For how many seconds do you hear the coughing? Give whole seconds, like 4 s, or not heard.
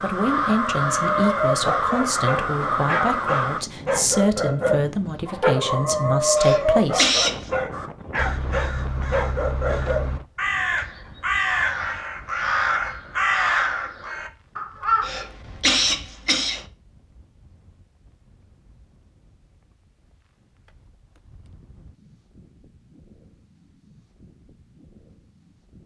3 s.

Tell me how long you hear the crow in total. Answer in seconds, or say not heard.
11 s.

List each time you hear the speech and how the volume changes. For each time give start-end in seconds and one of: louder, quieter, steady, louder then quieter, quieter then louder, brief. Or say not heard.
0.0-7.1 steady.